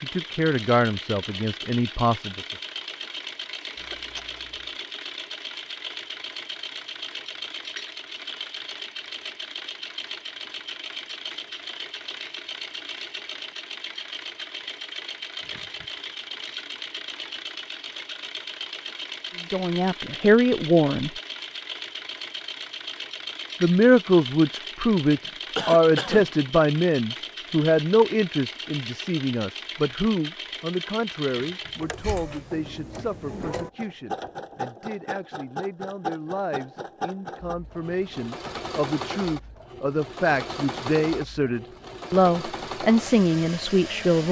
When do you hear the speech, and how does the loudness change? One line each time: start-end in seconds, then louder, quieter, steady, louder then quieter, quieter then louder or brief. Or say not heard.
0.0-2.5 brief
19.5-21.1 brief
23.6-44.2 quieter then louder.